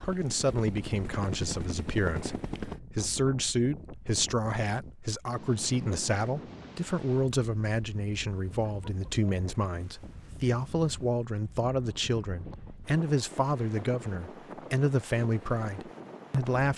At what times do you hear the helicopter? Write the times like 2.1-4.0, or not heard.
0.0-2.8.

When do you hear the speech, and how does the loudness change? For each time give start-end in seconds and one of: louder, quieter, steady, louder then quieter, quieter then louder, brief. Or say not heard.
0.1-16.7 steady.